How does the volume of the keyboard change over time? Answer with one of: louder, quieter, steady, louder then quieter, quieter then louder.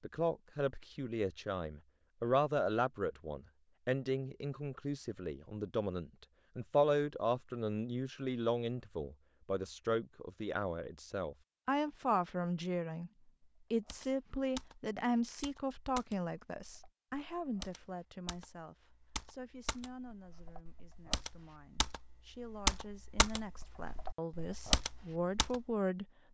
louder.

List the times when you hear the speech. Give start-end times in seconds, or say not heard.
0.0-13.1, 13.7-26.1.